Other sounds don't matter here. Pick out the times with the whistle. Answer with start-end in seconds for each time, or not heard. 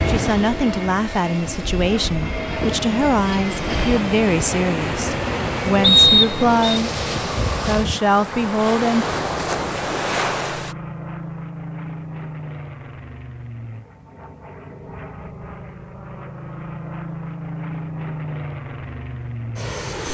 5.8-6.8.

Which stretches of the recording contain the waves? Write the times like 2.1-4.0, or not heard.
0.0-10.8.